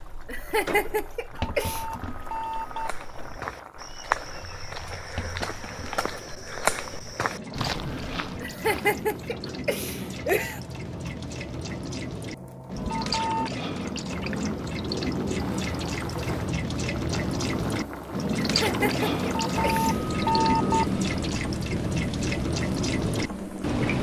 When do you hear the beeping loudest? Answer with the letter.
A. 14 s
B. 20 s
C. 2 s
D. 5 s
B.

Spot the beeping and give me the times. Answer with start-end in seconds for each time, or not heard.
1.4-2.9, 12.9-13.5, 19.5-20.9.